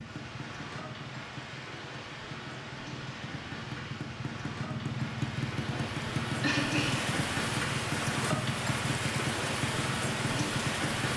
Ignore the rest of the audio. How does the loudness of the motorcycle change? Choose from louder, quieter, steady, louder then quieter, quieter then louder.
louder.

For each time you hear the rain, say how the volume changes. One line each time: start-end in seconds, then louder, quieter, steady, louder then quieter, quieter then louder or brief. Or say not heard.
0.0-11.1 louder.